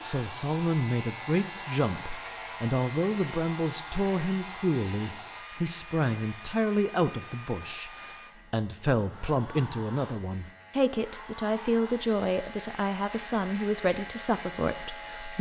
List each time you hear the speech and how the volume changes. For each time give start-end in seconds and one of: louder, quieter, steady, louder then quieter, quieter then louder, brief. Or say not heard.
0.0-15.3 steady.